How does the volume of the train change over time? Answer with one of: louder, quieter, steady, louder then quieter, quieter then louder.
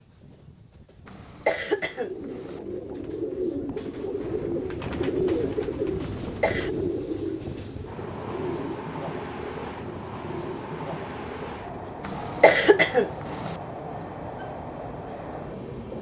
louder.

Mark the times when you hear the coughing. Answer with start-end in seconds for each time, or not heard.
1.1-2.6, 6.2-6.8, 12.0-13.6.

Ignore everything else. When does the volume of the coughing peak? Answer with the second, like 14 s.
13 s.